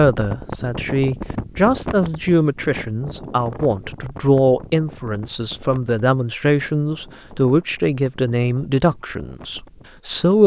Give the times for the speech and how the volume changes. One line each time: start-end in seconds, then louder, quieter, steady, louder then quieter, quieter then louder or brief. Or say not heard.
0.0-10.4 steady.